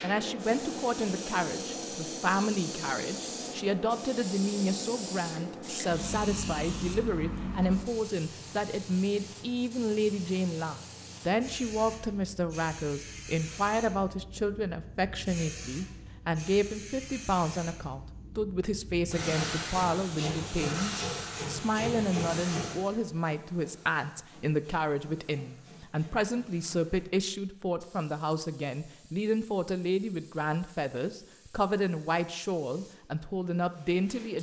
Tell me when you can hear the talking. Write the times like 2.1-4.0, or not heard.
0.0-34.3.